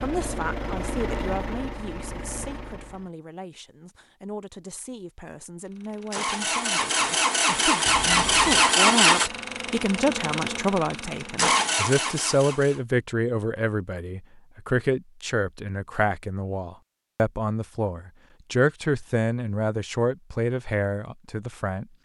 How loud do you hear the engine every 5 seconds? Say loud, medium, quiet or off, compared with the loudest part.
quiet, loud, medium, off, off.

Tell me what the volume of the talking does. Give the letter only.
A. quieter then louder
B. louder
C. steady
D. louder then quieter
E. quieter
B.